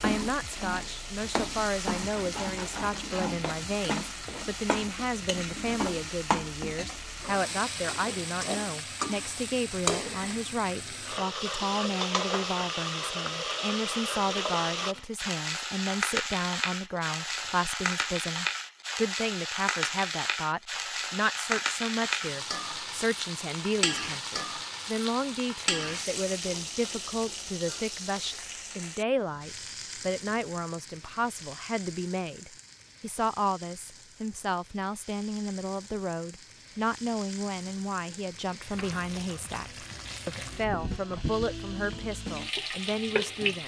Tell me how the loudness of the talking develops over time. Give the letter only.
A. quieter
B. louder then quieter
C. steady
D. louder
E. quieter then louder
C.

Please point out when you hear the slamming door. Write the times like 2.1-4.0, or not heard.
not heard.